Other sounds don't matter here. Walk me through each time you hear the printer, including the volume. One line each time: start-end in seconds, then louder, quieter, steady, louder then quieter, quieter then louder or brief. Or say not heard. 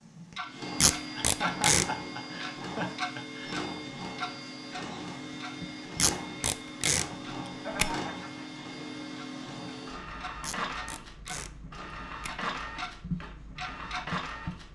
0.0-14.6 steady.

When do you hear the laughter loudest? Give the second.
2 s.